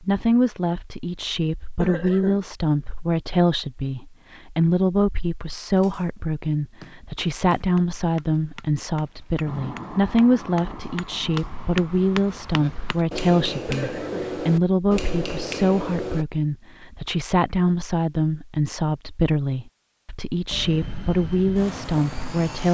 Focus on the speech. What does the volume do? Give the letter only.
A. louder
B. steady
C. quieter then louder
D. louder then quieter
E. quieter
B.